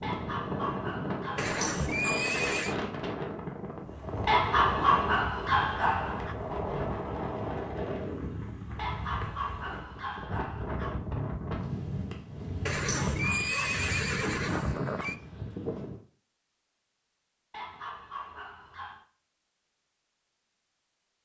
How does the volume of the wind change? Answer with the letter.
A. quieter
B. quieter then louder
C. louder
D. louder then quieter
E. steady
E.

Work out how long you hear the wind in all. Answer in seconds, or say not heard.
16 s.